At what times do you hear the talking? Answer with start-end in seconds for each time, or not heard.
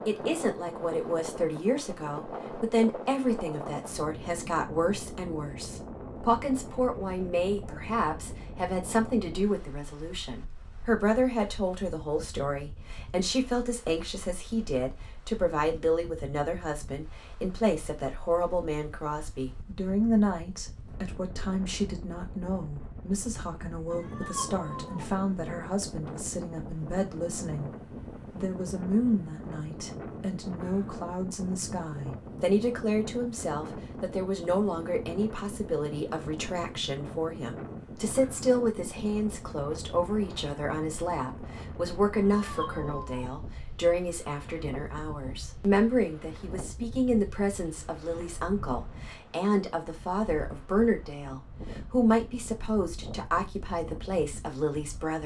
0.1-55.2.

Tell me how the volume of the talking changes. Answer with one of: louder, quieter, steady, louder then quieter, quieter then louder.
steady.